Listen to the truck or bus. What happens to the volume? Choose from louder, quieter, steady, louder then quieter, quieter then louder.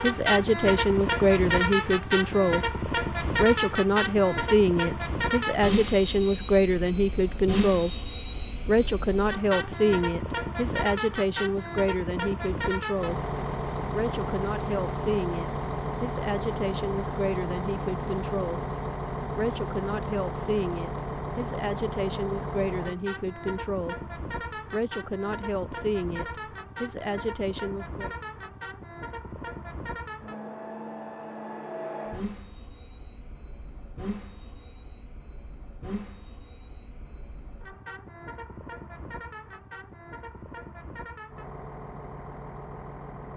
quieter.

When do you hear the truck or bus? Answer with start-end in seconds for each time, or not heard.
0.0-43.3.